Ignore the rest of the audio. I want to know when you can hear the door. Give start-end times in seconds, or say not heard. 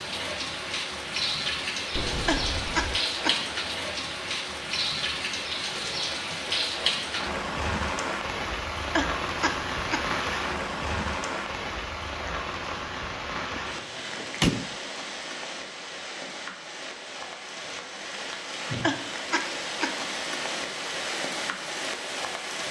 1.9-3.0, 13.6-14.8.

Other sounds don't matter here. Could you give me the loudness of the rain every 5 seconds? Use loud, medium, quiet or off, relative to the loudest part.
loud, loud, loud, medium, loud.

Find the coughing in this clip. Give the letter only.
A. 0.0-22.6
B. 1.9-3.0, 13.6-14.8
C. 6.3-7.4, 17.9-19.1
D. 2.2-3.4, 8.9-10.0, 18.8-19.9
D.